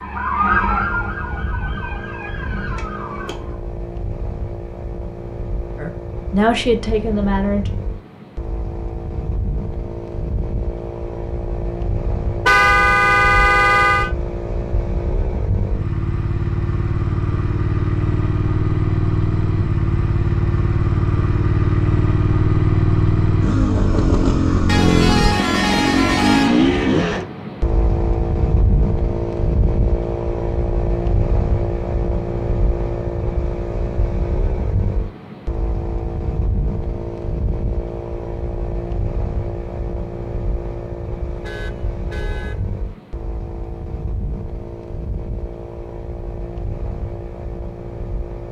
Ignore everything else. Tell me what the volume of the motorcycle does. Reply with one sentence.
The volume of the motorcycle goes up, then down.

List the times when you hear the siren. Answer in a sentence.
The siren can be heard from 0.0 to 3.5 s.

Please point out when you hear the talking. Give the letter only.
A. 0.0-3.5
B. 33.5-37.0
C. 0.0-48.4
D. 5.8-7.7
D.